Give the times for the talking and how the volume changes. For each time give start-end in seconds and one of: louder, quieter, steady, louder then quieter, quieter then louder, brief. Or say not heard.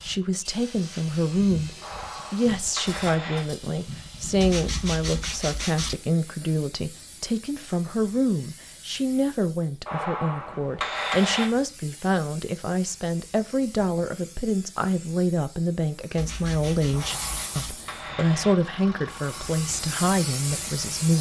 0.0-21.1 steady.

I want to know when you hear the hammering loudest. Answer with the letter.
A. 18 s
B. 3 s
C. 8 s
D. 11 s
D.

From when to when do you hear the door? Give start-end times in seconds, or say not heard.
not heard.